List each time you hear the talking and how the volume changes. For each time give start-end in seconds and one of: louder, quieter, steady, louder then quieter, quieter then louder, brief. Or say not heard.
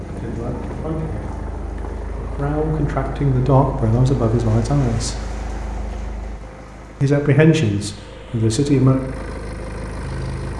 0.0-5.2 quieter then louder
7.0-9.0 brief.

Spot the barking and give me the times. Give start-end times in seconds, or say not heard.
not heard.